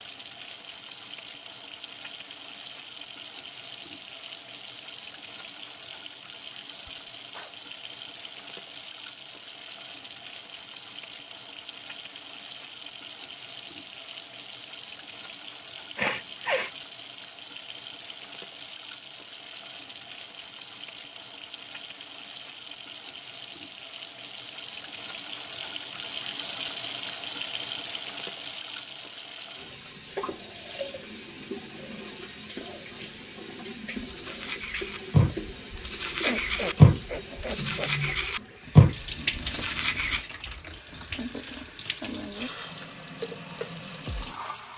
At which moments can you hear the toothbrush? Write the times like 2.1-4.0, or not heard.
34.1-40.2.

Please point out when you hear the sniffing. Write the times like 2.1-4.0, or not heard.
6.8-7.5, 15.9-16.7, 36.2-38.1.